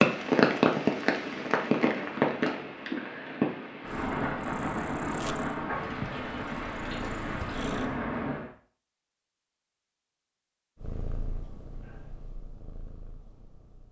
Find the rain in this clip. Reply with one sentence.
You can hear the rain from 0.0 to 8.5 s.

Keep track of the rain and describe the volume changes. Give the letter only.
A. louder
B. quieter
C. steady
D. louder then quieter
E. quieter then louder
B.